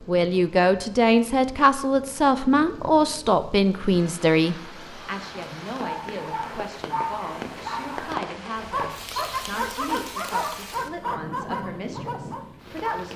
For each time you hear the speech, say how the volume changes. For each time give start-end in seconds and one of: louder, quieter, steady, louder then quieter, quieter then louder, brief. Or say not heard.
0.1-13.1 quieter.